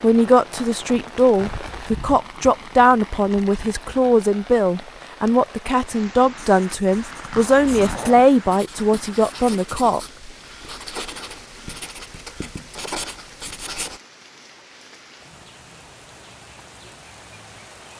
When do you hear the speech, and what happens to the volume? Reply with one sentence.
You can hear the speech from 0.0 to 10.0 s, at a steady volume.